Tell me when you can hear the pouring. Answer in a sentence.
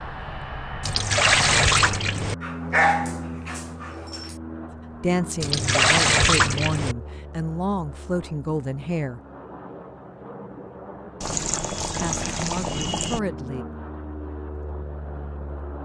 The pouring can be heard from 0.8 to 2.4 s, from 5.4 to 7.0 s and from 11.2 to 13.2 s.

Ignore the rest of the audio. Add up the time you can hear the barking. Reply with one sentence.
You can hear the barking for 2 seconds altogether.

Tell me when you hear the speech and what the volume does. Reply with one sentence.
The speech can be heard from 5.0 to 9.2 s, at a steady volume; and briefly from 12.0 to 13.7 s.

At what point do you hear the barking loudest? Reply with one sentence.
The volume of the barking peaks at 3 seconds.